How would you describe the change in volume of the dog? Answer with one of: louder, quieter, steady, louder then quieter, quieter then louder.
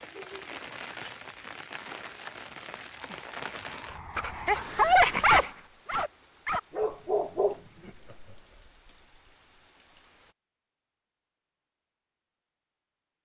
louder then quieter.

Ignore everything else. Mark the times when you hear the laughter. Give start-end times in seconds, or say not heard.
0.1-0.5, 7.5-8.7.